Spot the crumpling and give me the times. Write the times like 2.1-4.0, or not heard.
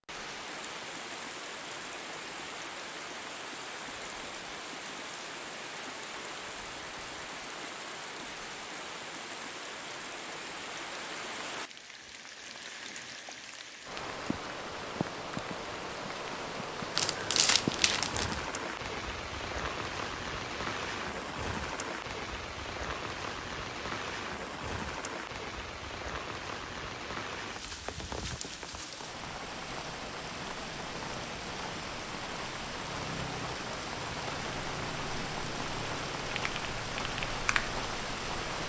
16.9-18.4.